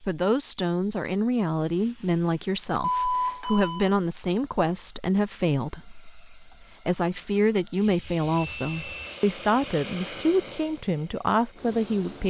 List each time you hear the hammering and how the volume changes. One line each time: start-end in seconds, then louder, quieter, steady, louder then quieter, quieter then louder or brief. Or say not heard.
not heard.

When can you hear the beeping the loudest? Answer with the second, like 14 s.
3 s.